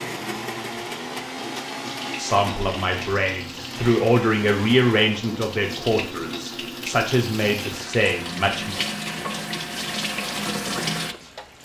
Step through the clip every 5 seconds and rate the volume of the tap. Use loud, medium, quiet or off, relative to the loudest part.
medium, loud, loud.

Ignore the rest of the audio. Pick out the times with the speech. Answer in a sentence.
You can hear the speech from 2.1 to 8.8 s.